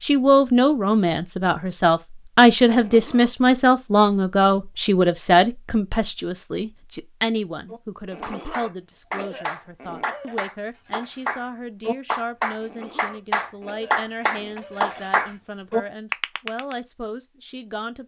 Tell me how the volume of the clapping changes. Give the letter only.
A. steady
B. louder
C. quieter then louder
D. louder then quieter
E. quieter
B.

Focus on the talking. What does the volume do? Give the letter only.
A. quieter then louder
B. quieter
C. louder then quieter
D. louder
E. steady
B.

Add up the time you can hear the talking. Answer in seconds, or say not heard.
18 s.